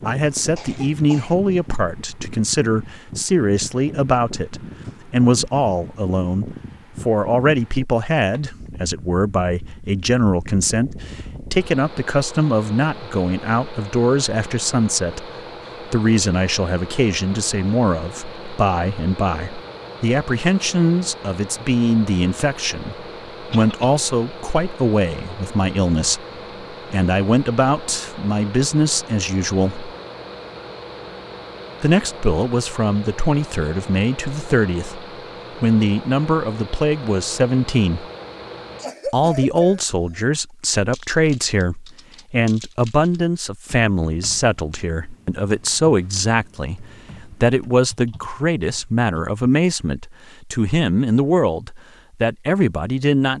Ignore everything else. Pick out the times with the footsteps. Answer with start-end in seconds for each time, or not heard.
not heard.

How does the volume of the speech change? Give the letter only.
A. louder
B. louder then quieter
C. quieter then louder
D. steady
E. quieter
D.